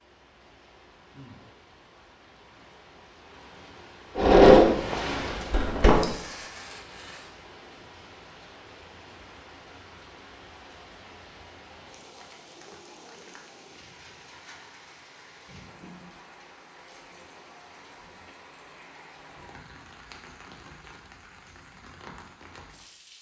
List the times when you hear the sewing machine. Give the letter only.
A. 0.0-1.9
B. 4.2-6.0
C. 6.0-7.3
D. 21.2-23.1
B.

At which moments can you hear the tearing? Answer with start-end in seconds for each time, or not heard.
6.0-7.3.